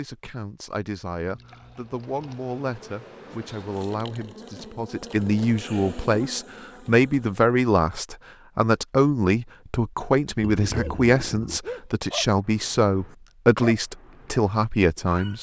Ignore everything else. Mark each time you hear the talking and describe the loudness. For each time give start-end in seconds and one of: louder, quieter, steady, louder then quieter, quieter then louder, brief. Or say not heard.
0.0-15.3 louder.